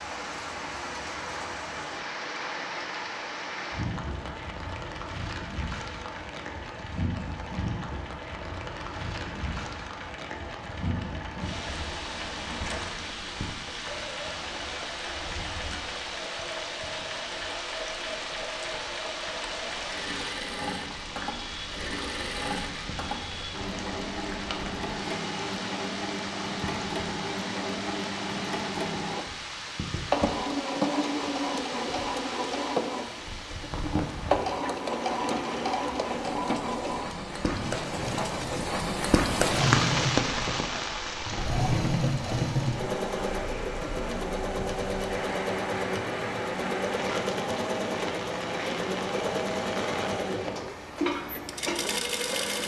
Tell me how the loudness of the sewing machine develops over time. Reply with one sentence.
The volume of the sewing machine goes up.